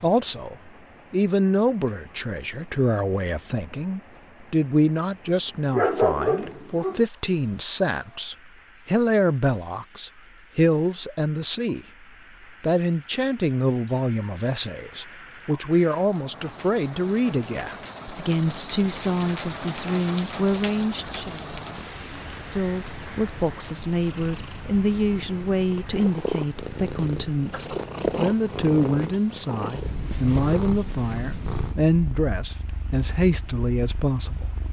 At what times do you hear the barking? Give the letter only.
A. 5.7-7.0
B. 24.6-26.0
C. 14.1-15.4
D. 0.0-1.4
A.